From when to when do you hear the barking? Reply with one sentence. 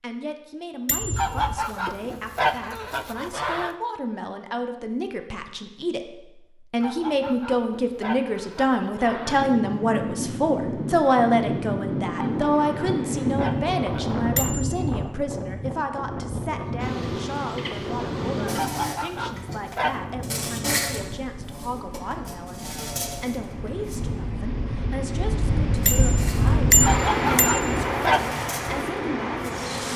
You can't hear the barking here.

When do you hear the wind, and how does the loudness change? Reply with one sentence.
You can hear the wind from 9.1 to 29.9 s, getting quieter then louder.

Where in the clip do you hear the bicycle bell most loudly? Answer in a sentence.
The volume of the bicycle bell peaks at 27 seconds.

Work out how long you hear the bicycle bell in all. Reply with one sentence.
You can hear the bicycle bell for 4 seconds altogether.